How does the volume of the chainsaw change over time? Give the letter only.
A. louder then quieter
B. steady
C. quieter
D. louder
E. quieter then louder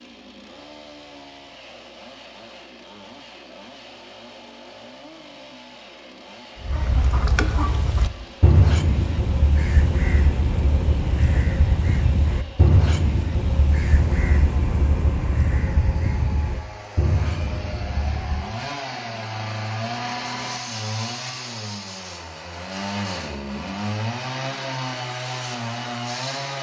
D.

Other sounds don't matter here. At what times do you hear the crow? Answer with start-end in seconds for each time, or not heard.
6.6-18.6.